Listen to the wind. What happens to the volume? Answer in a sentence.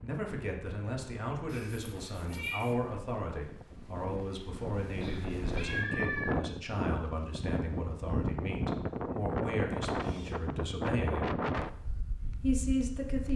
The loudness of the wind goes up.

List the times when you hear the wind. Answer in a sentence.
You can hear the wind from 0.0 to 13.3 s.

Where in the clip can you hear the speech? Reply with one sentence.
You can hear the speech from 0.0 to 11.3 s and from 12.4 to 13.3 s.